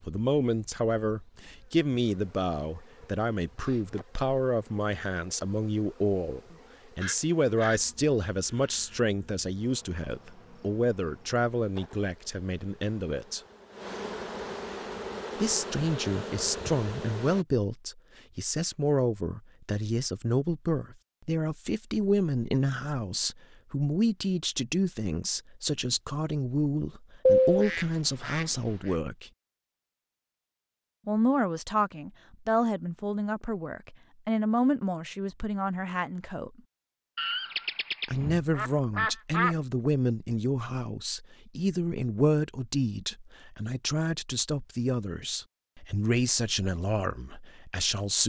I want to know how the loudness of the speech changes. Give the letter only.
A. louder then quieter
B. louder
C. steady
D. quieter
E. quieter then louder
C.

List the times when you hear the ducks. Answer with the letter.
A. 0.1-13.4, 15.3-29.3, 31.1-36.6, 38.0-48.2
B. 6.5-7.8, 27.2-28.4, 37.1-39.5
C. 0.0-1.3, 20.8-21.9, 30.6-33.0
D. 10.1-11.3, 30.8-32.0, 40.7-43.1
B.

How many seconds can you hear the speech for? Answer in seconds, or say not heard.
43 s.